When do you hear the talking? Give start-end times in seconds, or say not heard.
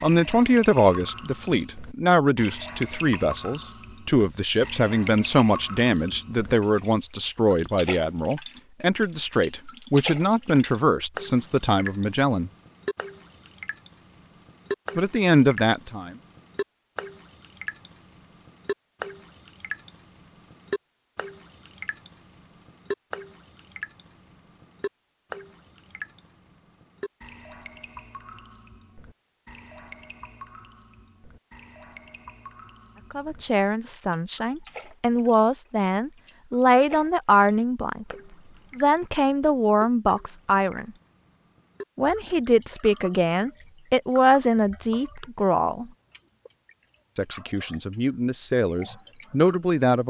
0.0-12.5, 14.9-16.1, 33.1-38.1, 38.8-40.9, 42.0-45.9, 47.1-50.0.